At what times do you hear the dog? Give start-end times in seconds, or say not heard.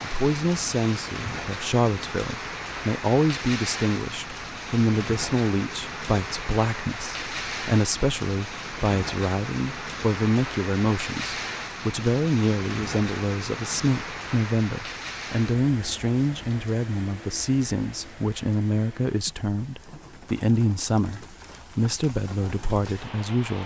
not heard.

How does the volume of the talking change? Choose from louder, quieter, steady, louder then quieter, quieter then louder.
steady.